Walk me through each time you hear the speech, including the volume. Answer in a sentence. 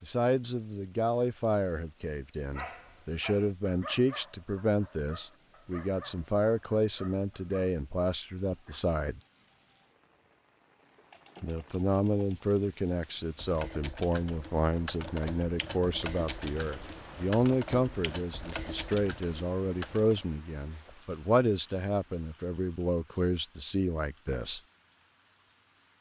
You can hear the speech from 0.0 to 9.2 s, at a steady volume; and from 11.4 to 24.6 s, at a steady volume.